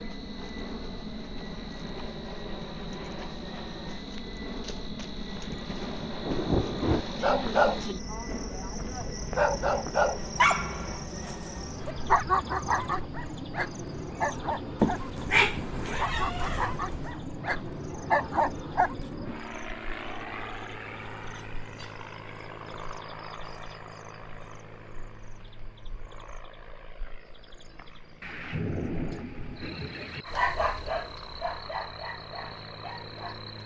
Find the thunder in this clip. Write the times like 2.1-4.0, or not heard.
5.5-7.0, 28.2-30.2.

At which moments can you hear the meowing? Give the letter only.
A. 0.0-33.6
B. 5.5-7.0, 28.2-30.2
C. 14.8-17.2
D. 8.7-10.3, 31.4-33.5
C.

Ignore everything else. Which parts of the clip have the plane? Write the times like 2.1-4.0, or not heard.
0.0-33.6.